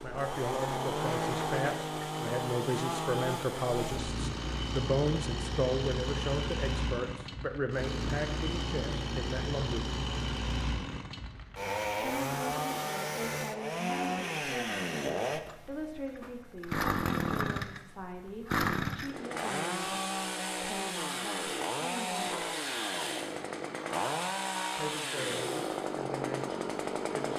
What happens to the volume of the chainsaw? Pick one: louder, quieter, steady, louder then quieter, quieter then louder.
steady.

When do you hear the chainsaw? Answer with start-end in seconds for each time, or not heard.
0.0-27.3.